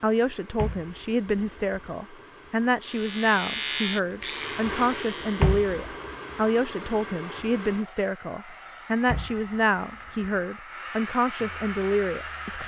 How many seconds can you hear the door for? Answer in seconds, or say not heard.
3 s.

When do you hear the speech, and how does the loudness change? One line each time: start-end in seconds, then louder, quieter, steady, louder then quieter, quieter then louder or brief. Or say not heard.
0.0-12.6 steady.